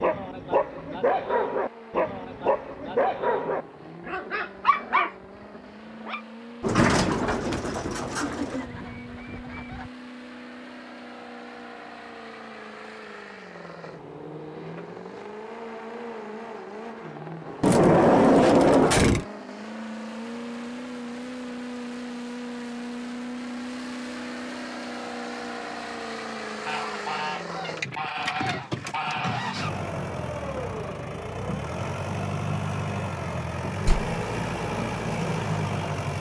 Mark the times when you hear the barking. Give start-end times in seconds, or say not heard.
0.0-6.2.